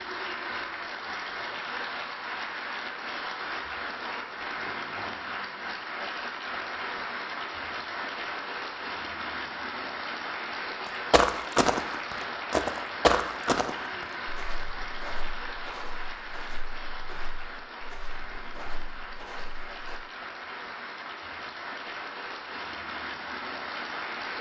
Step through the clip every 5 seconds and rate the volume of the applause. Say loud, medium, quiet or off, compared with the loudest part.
loud, loud, loud, medium, loud.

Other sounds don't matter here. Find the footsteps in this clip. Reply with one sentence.
You can hear the footsteps from 10.8 to 20.0 s.